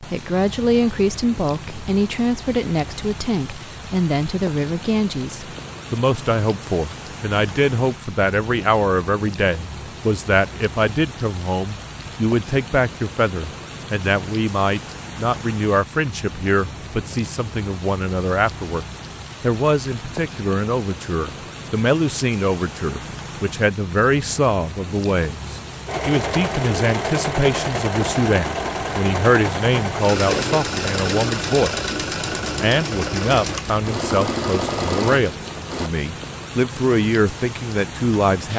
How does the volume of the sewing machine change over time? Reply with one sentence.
The loudness of the sewing machine stays about the same.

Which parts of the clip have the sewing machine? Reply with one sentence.
You can hear the sewing machine from 25.9 to 35.9 s.